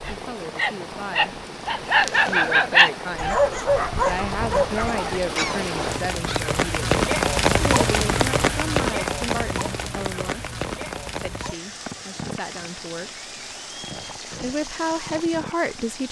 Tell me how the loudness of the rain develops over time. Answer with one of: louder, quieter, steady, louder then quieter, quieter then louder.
louder then quieter.